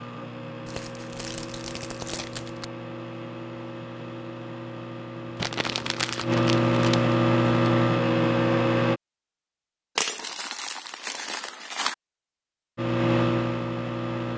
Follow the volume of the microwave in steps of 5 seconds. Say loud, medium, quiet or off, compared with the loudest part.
quiet, loud, loud.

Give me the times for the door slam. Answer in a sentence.
You can't hear the door slam here.